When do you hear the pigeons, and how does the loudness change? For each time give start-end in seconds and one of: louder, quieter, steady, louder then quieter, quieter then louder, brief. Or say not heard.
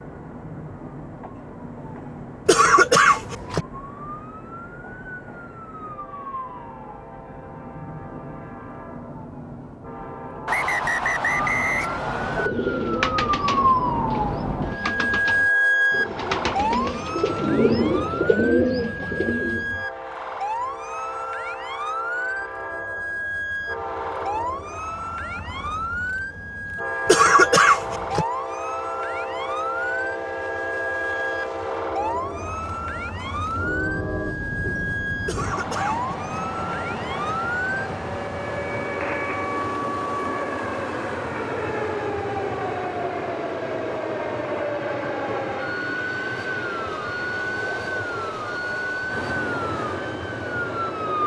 12.1-19.7 quieter then louder.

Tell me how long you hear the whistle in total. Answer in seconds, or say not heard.
2 s.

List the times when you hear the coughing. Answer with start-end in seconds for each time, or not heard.
2.5-3.6, 27.1-28.2, 35.2-36.4.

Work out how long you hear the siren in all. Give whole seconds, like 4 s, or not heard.
51 s.